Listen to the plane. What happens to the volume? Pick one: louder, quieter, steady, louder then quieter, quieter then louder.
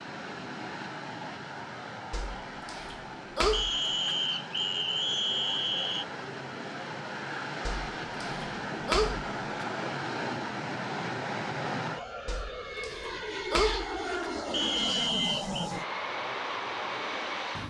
louder.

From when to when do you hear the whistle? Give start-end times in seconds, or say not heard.
3.5-6.0, 14.5-15.7.